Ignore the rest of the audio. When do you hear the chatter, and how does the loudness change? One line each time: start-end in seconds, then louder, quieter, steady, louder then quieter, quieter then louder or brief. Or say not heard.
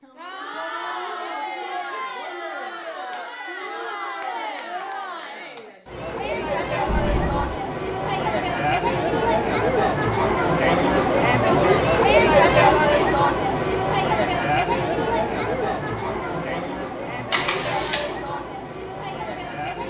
0.0-19.8 louder then quieter.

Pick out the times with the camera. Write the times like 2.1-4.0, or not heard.
6.8-7.5, 17.3-18.0.